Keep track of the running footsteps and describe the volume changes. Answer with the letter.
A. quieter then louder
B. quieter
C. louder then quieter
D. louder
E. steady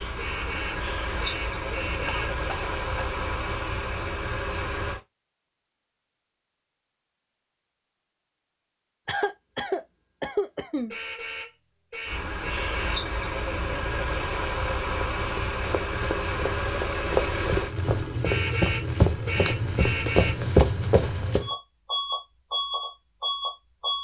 D.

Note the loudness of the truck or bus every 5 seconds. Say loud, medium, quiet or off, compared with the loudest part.
loud, off, loud, loud, loud.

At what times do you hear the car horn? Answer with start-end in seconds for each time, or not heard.
0.1-2.4, 10.9-13.1, 18.2-20.4.